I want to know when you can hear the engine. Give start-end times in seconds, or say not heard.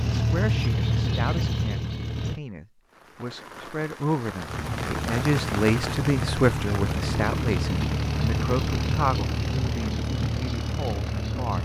0.0-2.4, 4.5-11.6.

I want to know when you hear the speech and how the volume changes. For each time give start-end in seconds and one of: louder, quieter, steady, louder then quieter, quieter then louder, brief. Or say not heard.
0.1-11.6 louder then quieter.